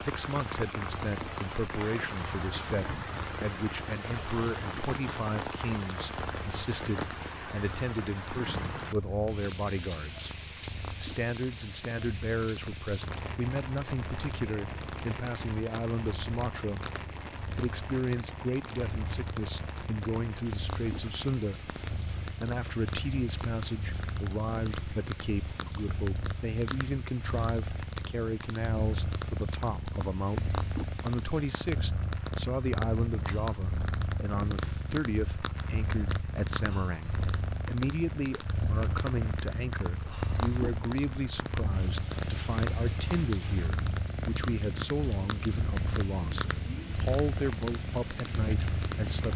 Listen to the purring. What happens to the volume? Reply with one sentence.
The volume of the purring goes up.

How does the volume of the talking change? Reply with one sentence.
The loudness of the talking stays about the same.